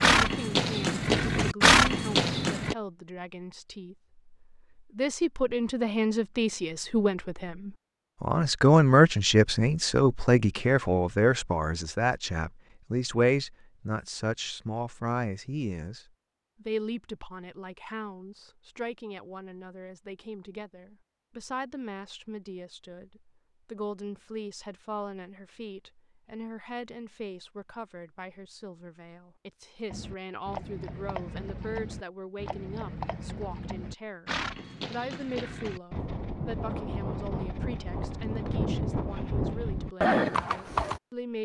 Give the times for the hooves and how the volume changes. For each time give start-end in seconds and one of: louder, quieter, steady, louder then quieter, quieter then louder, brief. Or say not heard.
0.0-2.8 brief
29.9-41.0 louder.